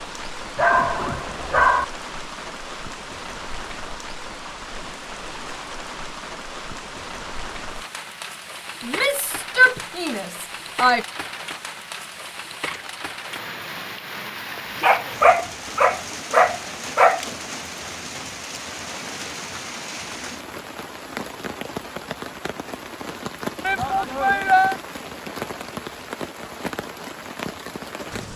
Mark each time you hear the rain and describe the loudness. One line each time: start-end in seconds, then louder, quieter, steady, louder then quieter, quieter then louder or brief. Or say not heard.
0.0-28.3 steady.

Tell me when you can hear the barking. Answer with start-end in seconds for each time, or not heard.
0.6-1.9, 14.8-17.2.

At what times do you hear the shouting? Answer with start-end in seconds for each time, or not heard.
8.8-11.1, 23.6-24.8.